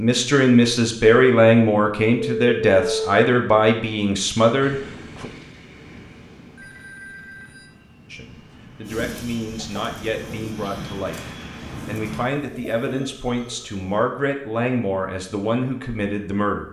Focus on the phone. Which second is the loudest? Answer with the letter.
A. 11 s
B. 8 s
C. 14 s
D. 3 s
D.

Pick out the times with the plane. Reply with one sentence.
You can hear the plane from 4.6 to 12.2 s.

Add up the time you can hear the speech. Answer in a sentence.
The speech can be heard for 14 seconds in total.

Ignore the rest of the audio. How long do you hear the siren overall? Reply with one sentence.
You can't hear the siren here.